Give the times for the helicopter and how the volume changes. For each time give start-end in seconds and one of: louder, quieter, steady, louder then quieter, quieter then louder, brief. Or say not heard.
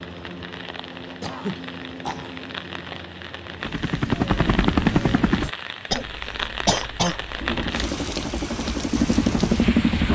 0.0-5.5 louder
7.4-10.1 brief.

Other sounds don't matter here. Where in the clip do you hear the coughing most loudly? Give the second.
7 s.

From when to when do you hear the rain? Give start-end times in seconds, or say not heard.
0.0-10.1.